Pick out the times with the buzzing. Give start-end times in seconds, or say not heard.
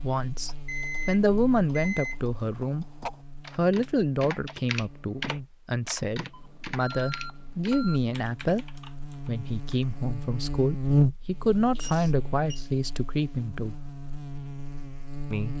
0.0-15.5.